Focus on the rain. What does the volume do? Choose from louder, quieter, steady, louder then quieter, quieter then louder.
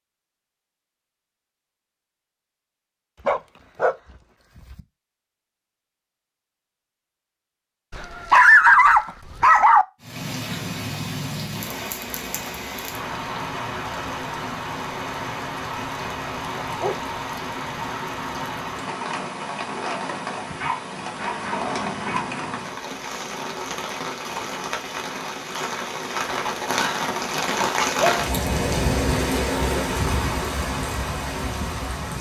louder.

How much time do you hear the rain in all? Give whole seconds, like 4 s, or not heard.
22 s.